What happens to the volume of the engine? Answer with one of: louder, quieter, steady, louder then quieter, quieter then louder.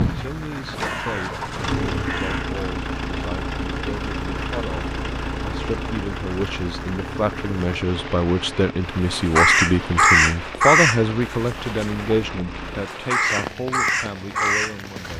quieter.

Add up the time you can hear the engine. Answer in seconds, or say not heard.
13 s.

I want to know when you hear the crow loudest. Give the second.
10 s.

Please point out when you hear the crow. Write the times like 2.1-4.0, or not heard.
0.2-2.5, 9.1-12.1, 12.8-15.1.